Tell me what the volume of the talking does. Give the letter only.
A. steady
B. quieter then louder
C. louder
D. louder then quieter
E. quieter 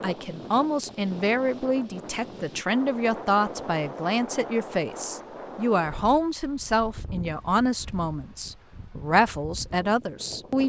A.